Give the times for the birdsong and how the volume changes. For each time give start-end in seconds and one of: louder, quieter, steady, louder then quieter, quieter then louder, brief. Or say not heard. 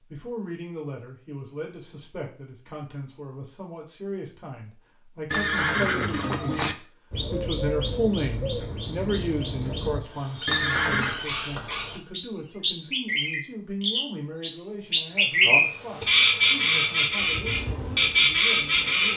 7.1-19.1 louder.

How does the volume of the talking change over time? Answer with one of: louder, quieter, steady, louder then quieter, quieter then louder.
louder then quieter.